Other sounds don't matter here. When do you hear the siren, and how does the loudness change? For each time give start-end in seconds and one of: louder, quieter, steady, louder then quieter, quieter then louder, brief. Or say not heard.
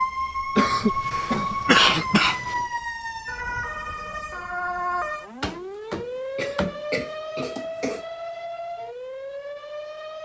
0.0-10.2 quieter.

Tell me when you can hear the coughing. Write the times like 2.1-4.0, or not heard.
0.6-2.6, 5.4-8.1.